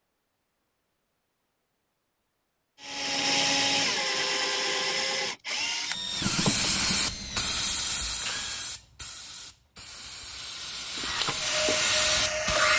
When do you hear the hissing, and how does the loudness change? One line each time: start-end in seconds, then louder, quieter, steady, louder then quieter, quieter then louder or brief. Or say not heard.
6.0-12.7 quieter then louder.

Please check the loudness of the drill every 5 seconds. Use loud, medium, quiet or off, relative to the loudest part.
loud, medium, loud.